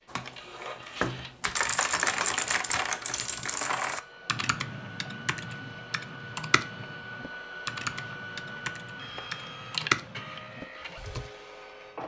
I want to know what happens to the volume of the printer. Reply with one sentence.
The volume of the printer goes up.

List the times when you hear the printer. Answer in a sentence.
The printer can be heard from 0.0 to 12.0 s.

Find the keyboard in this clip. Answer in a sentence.
The keyboard can be heard from 0.1 to 11.3 s.